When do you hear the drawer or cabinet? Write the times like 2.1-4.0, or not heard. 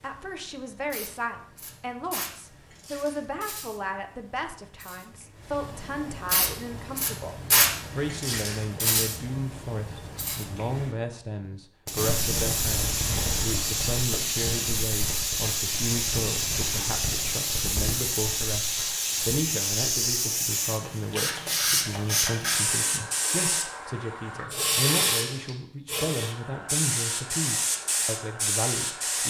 not heard.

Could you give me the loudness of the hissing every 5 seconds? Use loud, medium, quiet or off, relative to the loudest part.
quiet, loud, loud, loud, loud, loud.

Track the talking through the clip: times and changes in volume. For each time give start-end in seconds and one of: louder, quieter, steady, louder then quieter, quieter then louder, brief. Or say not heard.
0.0-7.3 steady
8.0-29.2 steady.